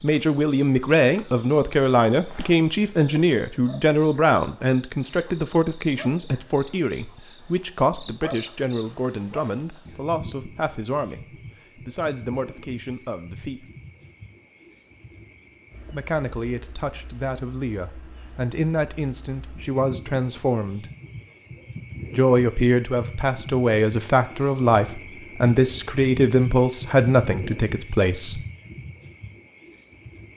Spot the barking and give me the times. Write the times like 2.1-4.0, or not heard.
not heard.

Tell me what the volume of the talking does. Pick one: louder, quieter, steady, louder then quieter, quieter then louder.
quieter then louder.